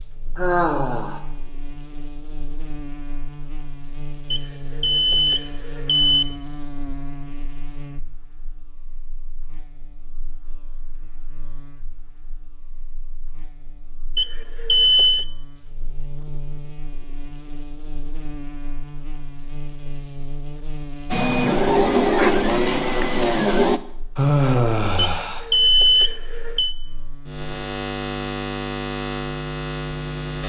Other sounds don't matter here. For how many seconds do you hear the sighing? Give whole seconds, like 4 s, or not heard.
2 s.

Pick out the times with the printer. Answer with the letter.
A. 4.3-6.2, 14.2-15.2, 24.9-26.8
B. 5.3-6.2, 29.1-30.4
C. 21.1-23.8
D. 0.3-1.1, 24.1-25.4
C.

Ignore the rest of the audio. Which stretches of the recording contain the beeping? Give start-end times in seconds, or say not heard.
4.3-6.2, 14.2-15.2, 24.9-26.8.